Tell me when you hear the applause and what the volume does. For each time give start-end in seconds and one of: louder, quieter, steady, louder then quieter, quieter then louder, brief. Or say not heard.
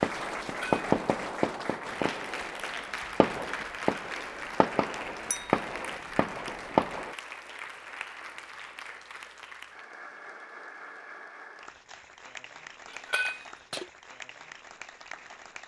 0.0-15.6 quieter.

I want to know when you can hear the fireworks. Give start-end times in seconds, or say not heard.
0.0-7.2.